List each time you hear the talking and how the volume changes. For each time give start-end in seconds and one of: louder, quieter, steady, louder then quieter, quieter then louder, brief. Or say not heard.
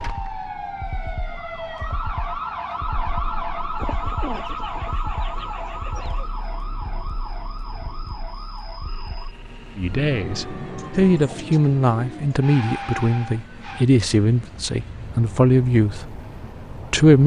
9.8-17.2 steady.